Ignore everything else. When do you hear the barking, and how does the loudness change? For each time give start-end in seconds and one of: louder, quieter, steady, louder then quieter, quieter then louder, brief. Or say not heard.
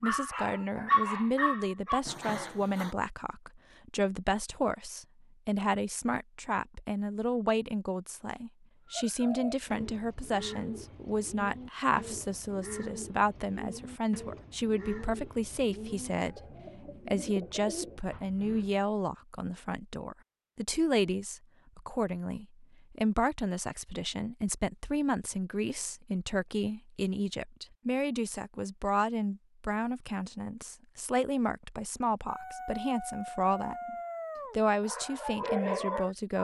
0.0-3.0 brief
32.2-36.3 louder.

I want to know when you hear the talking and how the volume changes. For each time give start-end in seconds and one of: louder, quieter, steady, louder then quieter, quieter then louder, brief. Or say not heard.
0.0-33.9 steady
34.5-36.3 brief.